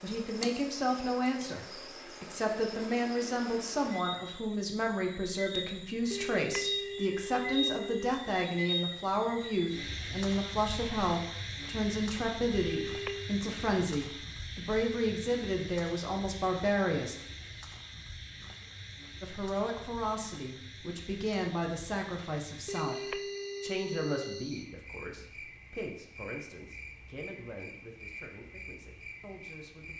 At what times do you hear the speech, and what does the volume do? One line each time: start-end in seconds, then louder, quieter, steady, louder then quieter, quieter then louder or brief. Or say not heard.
0.0-17.1 steady
19.2-29.9 quieter.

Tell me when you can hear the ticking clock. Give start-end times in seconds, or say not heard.
not heard.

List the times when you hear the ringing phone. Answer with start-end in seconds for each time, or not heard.
6.1-8.1, 12.6-13.3, 22.6-24.5.